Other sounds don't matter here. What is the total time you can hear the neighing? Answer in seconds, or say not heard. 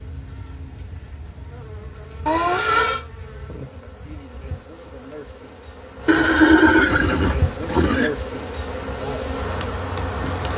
3 s.